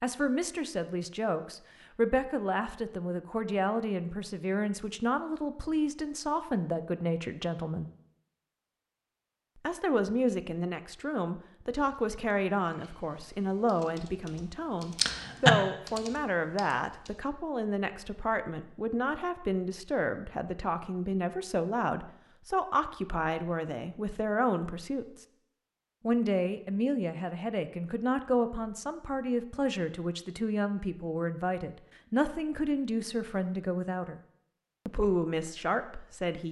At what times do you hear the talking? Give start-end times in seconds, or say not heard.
0.0-7.9, 9.6-25.2, 26.1-34.2, 34.9-36.4.